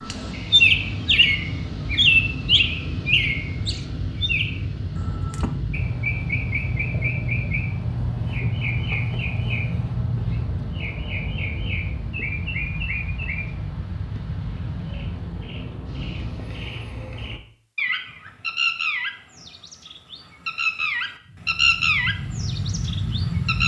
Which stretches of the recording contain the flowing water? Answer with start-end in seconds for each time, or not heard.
not heard.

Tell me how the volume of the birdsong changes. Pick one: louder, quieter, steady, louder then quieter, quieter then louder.
quieter then louder.